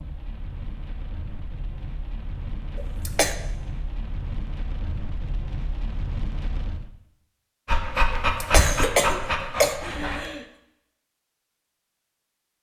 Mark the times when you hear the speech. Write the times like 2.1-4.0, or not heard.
not heard.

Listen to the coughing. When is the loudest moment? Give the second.
9 s.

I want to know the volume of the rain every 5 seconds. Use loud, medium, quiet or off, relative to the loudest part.
loud, loud, off.